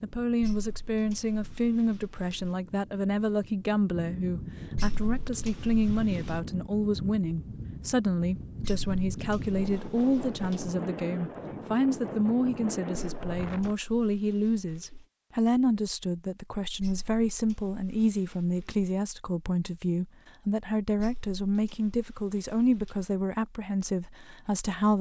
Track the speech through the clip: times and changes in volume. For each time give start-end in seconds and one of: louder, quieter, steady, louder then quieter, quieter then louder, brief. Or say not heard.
0.0-24.9 steady.